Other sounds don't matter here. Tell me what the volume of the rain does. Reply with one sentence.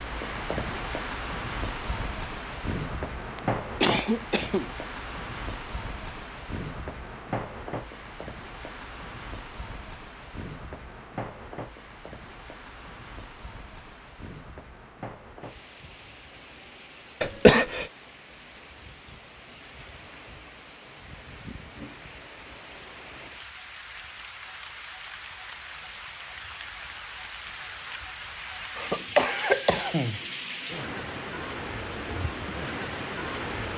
The loudness of the rain goes down, then up.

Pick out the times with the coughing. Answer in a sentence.
The coughing can be heard from 3.4 to 4.7 s, from 17.2 to 17.9 s and from 28.8 to 30.2 s.